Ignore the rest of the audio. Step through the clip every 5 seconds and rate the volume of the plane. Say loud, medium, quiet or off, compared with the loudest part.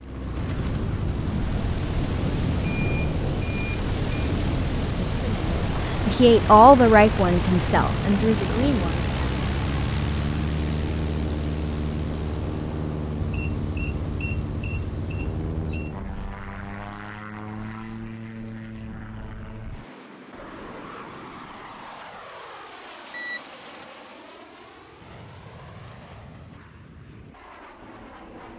loud, loud, loud, medium, quiet, quiet.